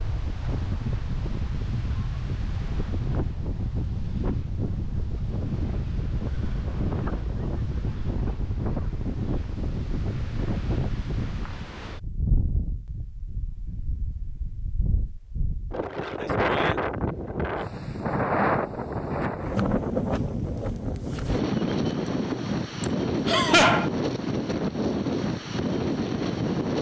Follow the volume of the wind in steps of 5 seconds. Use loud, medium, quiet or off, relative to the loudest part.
medium, medium, medium, loud, loud, loud.